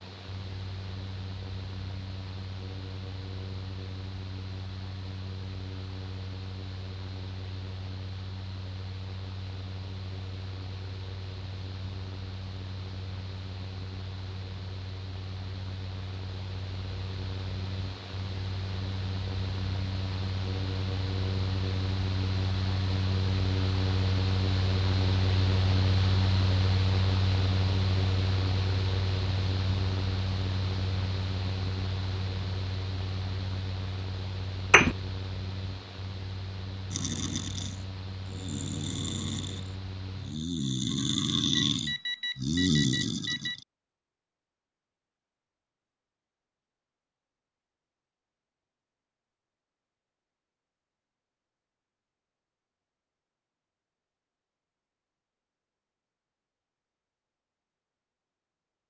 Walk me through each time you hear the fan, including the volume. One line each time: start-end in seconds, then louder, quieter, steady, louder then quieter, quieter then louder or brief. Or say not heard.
0.0-40.5 louder then quieter.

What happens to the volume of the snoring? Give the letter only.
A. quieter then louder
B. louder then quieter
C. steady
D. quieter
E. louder
E.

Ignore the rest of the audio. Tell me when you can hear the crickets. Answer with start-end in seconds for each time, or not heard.
not heard.